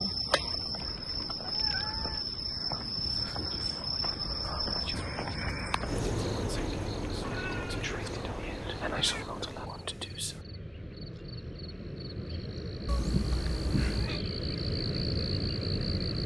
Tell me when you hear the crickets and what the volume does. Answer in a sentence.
You can hear the crickets from 0.0 to 16.2 s, getting quieter then louder.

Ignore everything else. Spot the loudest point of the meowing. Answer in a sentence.
The volume of the meowing peaks at 13 seconds.